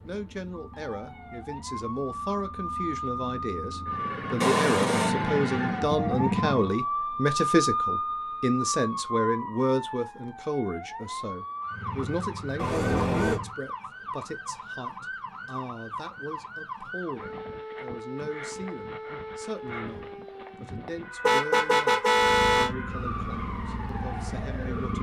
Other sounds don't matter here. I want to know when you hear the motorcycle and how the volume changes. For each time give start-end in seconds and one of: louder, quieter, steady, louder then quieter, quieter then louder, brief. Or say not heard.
0.0-6.7 louder
11.7-13.6 brief
22.1-24.9 brief.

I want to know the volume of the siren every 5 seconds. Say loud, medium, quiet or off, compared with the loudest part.
medium, loud, medium, medium, medium.